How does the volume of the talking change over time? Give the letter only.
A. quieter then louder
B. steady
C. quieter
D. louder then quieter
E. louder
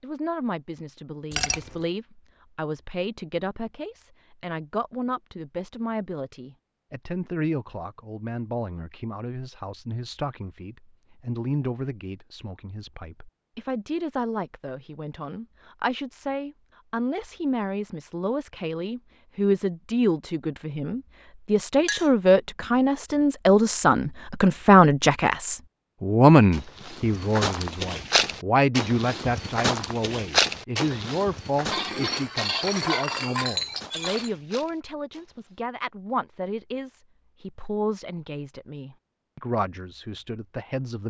D.